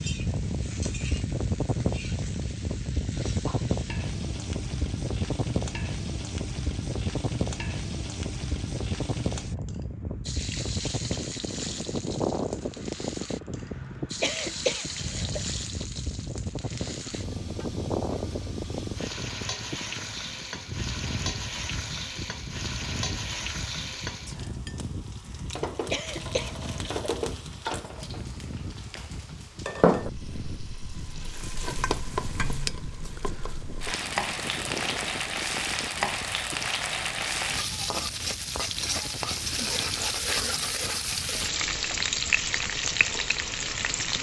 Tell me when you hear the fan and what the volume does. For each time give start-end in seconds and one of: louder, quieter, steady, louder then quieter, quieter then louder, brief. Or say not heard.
0.0-44.1 quieter.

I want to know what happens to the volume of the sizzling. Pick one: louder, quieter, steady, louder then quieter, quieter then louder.
louder.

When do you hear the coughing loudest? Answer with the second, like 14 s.
15 s.